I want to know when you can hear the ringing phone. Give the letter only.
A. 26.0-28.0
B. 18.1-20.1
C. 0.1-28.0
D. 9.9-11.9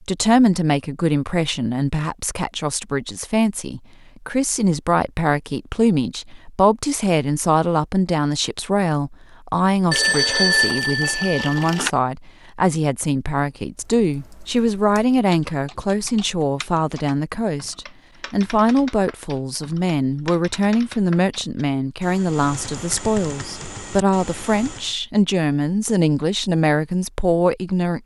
D.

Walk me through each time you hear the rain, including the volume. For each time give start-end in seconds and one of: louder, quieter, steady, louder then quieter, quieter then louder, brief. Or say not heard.
not heard.